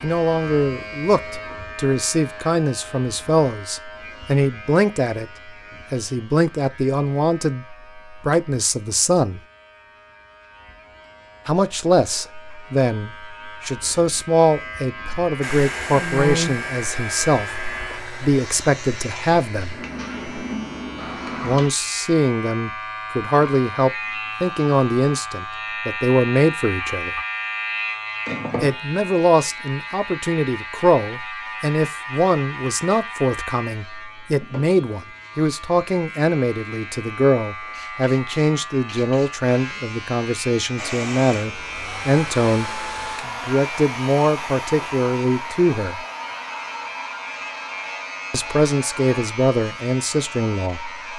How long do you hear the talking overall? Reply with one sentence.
You can hear the talking for 43 seconds altogether.